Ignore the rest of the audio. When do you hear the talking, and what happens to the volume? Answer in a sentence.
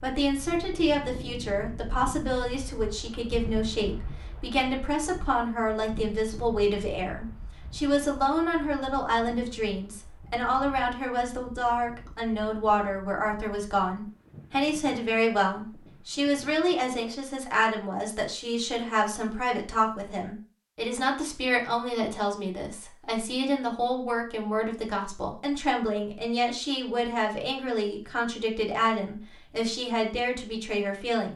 You can hear the talking from 0.0 to 31.3 s, at a steady volume.